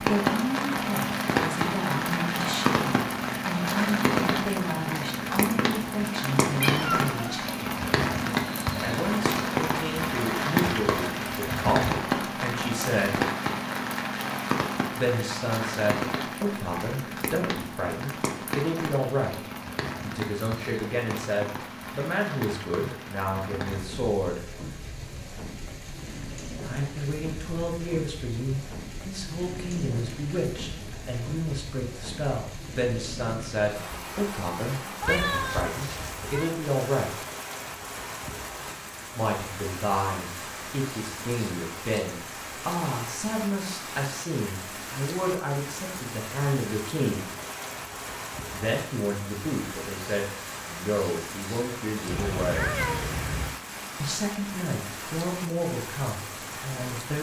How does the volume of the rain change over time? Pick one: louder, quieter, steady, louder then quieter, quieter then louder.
quieter.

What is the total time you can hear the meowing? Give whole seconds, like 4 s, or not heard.
4 s.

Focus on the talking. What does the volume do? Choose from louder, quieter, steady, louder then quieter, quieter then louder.
steady.